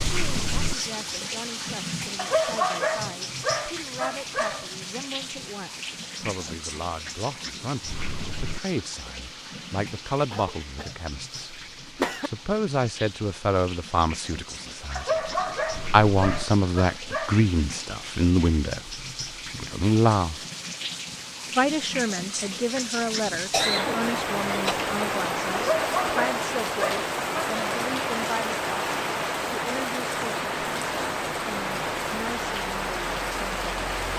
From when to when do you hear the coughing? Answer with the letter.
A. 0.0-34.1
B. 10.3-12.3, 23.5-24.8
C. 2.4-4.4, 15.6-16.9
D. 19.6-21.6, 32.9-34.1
B.